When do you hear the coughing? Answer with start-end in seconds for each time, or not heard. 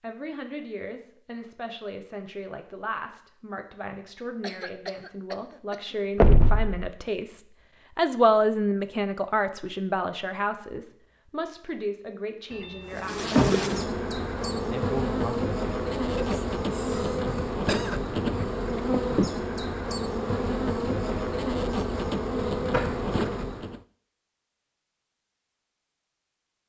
4.4-6.0, 16.1-18.0.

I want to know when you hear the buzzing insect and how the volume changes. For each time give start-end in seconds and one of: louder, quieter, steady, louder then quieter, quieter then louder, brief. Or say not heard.
12.8-23.8 steady.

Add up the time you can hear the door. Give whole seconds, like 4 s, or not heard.
2 s.